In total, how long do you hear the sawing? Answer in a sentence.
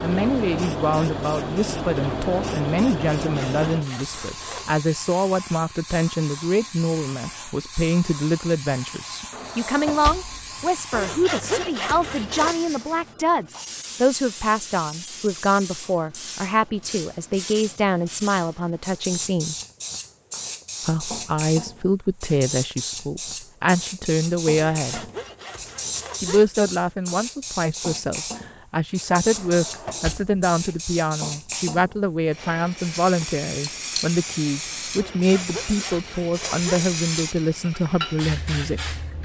The sawing can be heard for 7 seconds in total.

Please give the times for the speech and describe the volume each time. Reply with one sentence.
You can hear the speech from 0.0 to 19.6 s, at a steady volume; from 20.9 to 25.1 s, getting quieter then louder; and from 26.2 to 39.0 s, at a steady volume.